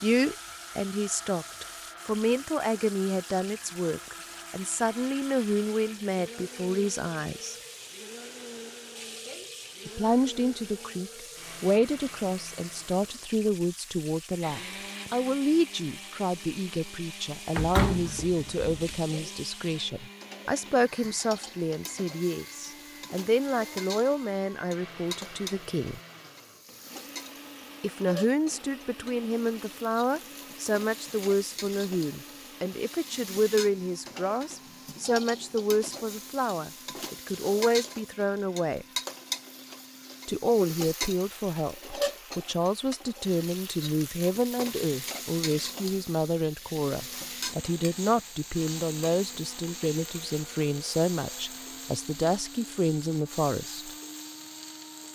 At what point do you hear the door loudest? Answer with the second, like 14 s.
18 s.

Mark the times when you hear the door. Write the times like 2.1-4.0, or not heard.
17.6-19.0.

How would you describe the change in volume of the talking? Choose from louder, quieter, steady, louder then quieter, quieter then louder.
steady.